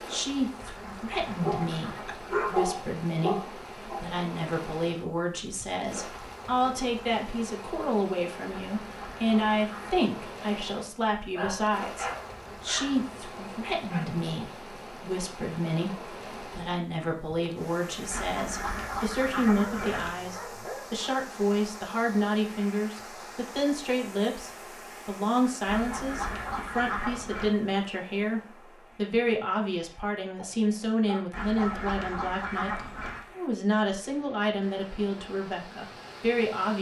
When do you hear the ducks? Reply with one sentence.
You can hear the ducks from 0.6 to 2.5 s, from 8.6 to 10.0 s, from 18.1 to 20.1 s, from 25.6 to 27.6 s and from 31.3 to 33.2 s.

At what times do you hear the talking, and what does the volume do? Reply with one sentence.
The talking can be heard from 0.1 to 36.7 s, at a steady volume.